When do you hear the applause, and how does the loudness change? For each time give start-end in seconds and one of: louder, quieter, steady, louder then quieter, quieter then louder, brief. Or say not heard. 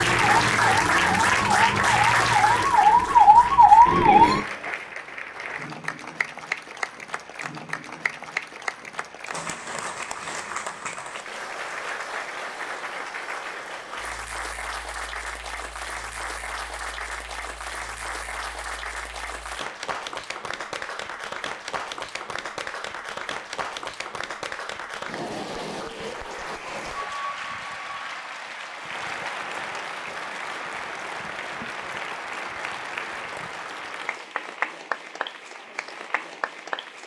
0.0-37.0 quieter.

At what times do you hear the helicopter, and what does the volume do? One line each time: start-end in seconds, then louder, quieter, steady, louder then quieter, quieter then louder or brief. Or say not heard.
not heard.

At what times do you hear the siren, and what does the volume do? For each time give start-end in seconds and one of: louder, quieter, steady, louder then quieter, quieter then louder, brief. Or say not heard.
0.0-4.4 louder.